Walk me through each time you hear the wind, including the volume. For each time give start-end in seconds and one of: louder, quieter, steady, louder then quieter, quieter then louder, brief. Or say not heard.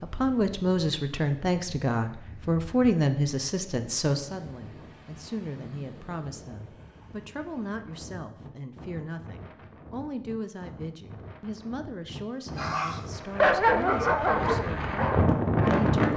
0.0-16.1 louder.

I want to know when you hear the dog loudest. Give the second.
14 s.